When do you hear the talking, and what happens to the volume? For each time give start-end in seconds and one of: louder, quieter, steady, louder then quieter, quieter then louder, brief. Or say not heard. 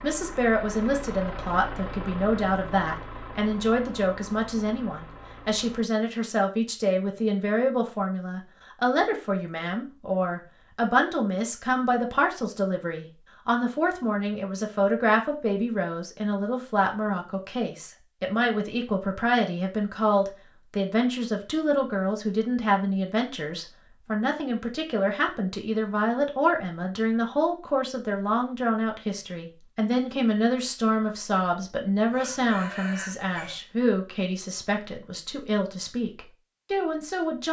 0.0-37.4 steady.